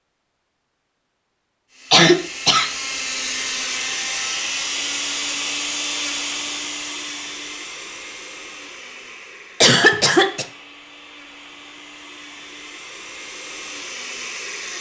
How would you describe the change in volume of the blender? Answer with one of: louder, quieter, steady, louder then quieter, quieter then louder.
quieter then louder.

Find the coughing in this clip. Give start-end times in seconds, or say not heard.
1.9-2.7, 9.6-10.4.